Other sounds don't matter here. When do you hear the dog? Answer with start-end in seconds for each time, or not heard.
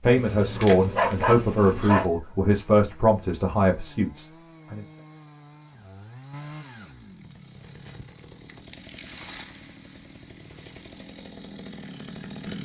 0.1-2.0.